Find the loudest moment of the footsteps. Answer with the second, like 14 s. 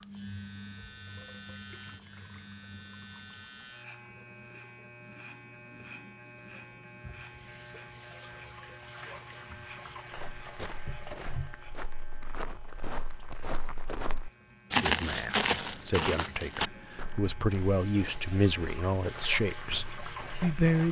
15 s.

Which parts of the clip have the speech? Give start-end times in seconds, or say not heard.
14.8-20.8.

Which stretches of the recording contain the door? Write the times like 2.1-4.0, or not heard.
not heard.